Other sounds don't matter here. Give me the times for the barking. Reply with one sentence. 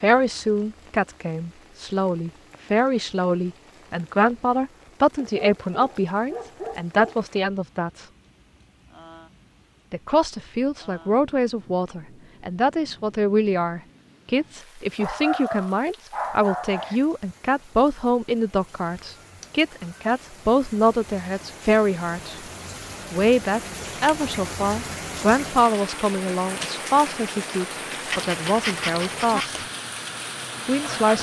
You can hear the barking from 5.2 to 7.2 s, from 14.9 to 17.0 s and from 28.1 to 29.6 s.